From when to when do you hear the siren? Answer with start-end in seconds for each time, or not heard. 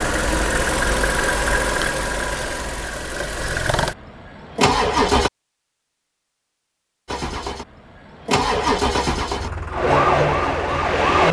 9.7-11.2.